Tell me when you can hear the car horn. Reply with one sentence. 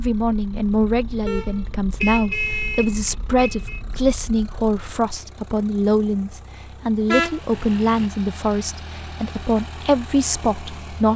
You can hear the car horn from 1.2 to 3.8 s and from 7.0 to 8.1 s.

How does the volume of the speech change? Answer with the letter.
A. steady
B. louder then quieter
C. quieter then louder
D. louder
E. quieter
A.